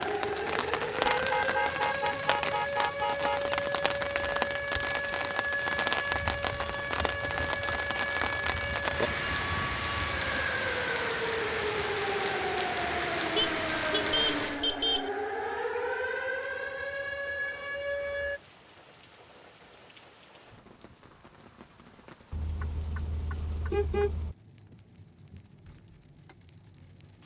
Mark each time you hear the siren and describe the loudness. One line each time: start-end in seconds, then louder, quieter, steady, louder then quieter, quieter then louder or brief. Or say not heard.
0.0-18.4 steady.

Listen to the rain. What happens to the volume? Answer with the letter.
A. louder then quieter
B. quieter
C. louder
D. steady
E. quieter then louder
B.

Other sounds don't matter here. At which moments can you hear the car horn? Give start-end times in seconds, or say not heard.
1.1-3.5, 13.3-15.1, 22.3-24.4.